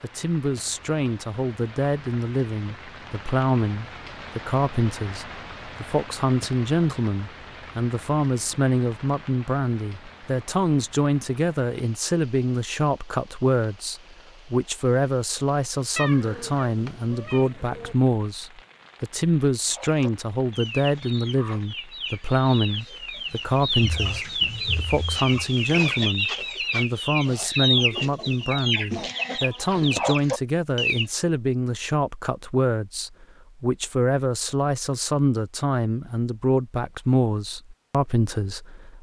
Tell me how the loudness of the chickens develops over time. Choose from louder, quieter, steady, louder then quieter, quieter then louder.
louder.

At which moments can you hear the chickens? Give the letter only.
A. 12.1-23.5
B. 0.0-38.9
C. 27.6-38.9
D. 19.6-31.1
D.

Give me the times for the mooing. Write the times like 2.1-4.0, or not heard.
not heard.